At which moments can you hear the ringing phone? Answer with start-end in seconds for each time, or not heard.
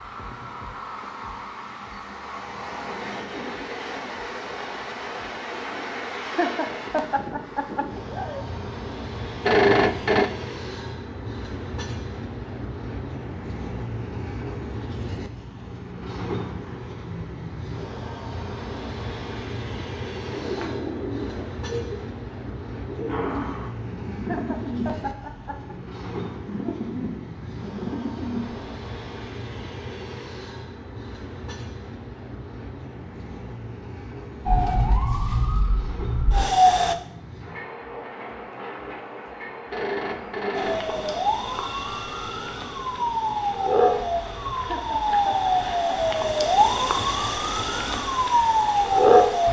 9.4-10.3, 39.7-41.2.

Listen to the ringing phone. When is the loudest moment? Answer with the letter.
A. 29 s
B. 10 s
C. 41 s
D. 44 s
B.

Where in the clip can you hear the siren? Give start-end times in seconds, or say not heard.
34.5-37.0, 40.5-49.4.